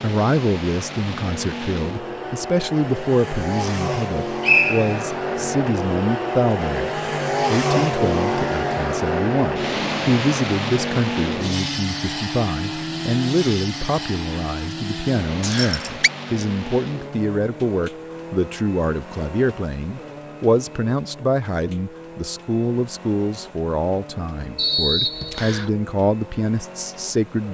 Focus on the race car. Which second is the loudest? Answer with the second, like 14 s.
8 s.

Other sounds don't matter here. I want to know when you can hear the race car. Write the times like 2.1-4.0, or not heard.
0.0-27.4.